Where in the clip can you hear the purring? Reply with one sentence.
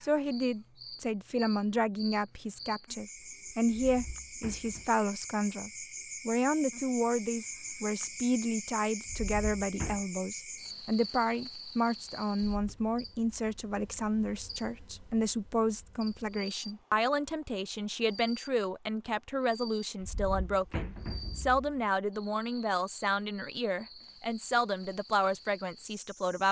The purring can't be heard in this clip.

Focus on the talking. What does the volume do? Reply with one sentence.
The loudness of the talking stays about the same.